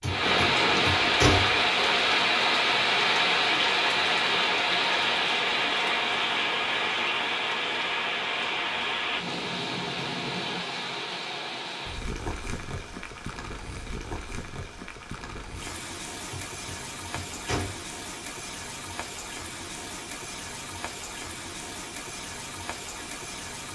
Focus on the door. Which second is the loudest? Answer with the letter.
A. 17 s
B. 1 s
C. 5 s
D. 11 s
B.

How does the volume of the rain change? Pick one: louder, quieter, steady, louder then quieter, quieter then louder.
quieter.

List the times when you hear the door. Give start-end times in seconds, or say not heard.
0.0-1.6, 16.3-17.8.